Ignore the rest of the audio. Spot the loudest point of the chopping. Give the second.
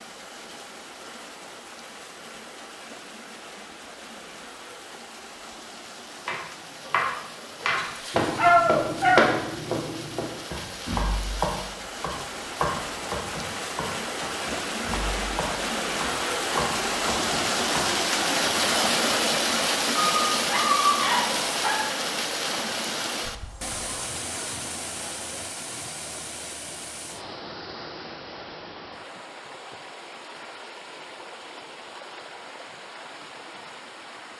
9 s.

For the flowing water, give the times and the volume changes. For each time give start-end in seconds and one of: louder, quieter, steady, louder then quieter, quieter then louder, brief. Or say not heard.
0.0-34.3 louder then quieter.